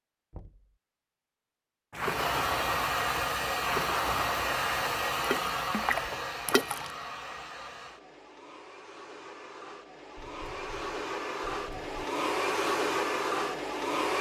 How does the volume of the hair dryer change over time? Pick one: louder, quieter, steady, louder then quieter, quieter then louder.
quieter then louder.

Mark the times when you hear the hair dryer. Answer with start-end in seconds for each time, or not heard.
1.9-14.1.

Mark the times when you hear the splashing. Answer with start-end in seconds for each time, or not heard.
1.9-6.9.